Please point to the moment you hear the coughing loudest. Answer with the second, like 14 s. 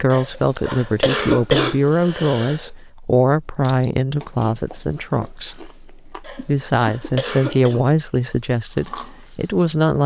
1 s.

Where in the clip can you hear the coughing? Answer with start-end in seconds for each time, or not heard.
0.1-2.7, 6.2-7.8.